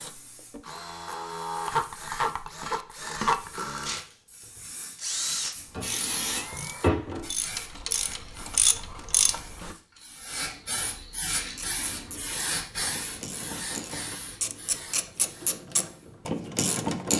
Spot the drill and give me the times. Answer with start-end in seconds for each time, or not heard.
0.0-6.9.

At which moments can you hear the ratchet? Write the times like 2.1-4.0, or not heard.
5.7-9.8, 11.3-17.1.